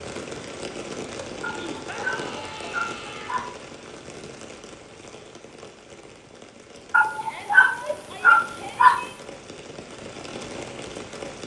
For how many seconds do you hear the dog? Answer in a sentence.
The dog can be heard for 4 seconds in total.